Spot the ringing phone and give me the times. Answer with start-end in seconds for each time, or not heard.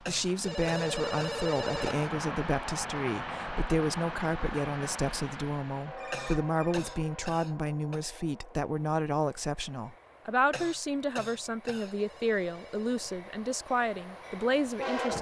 0.4-1.9, 6.0-6.8, 11.8-13.2.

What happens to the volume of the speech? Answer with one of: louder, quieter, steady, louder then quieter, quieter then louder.
steady.